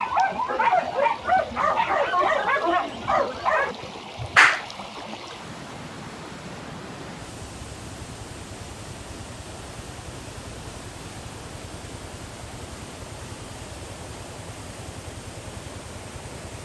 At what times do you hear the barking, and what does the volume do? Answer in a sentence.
The barking can be heard from 0.0 to 4.7 s, at a steady volume.